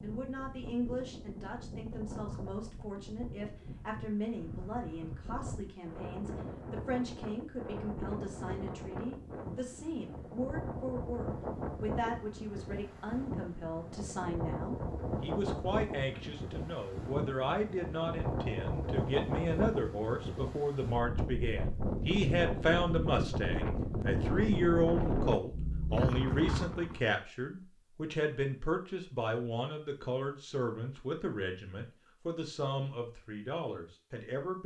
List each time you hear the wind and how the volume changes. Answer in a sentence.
You can hear the wind from 0.0 to 27.1 s, getting louder.